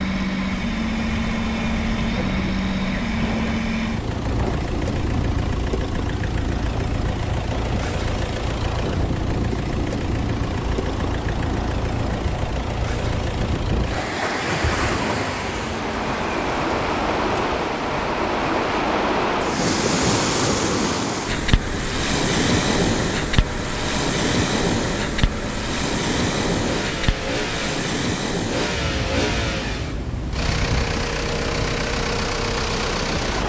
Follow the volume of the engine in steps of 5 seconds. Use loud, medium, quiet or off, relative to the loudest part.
loud, loud, loud, medium, medium, loud, loud.